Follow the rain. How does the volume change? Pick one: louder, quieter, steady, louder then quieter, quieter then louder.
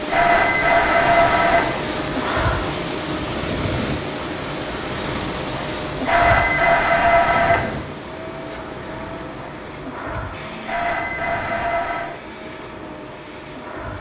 quieter.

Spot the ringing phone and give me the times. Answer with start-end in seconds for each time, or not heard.
0.1-1.6, 6.0-7.6, 10.7-12.2.